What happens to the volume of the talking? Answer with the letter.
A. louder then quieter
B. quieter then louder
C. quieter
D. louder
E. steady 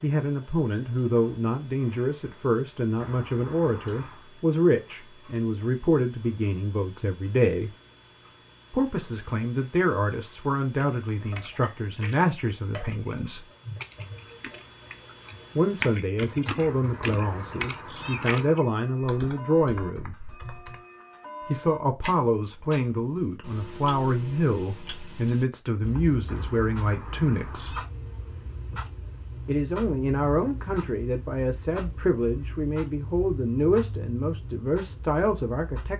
E.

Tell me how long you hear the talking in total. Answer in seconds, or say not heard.
30 s.